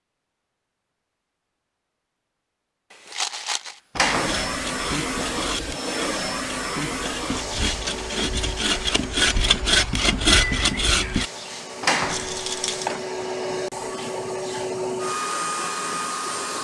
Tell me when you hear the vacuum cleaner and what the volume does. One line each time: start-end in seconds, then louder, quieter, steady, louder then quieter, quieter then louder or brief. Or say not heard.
4.0-16.5 quieter then louder.